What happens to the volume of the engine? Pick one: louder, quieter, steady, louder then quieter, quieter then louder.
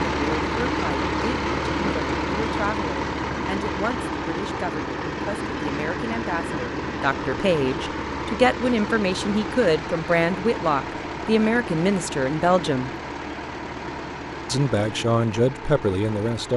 quieter.